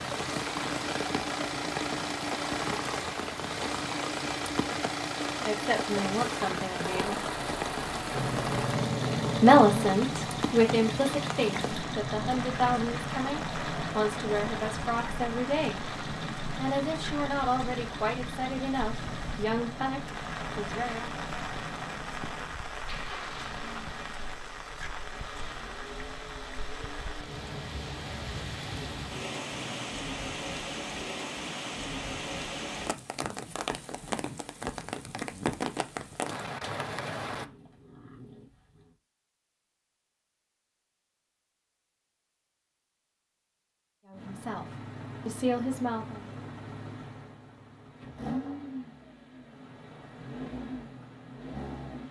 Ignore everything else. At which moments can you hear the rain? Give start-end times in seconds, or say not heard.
0.0-37.5.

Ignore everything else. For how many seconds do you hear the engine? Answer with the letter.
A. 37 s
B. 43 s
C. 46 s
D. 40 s
A.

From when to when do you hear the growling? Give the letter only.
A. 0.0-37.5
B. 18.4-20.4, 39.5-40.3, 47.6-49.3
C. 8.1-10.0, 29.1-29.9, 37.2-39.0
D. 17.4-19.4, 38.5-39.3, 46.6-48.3
C.